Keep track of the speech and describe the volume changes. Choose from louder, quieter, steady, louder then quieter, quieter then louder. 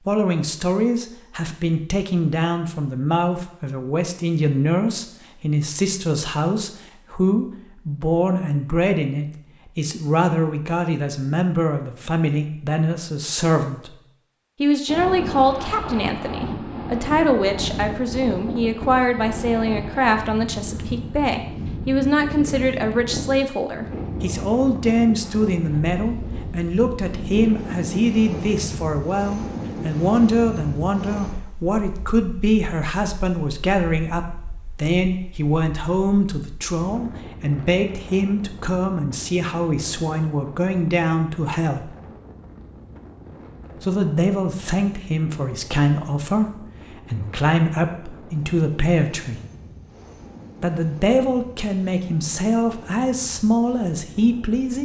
steady.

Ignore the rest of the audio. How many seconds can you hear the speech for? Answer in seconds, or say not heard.
51 s.